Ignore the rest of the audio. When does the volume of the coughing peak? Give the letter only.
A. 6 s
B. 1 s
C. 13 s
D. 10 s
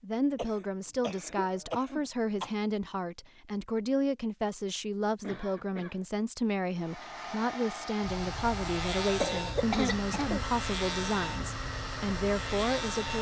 D.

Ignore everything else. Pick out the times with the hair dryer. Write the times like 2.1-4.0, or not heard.
6.7-13.1.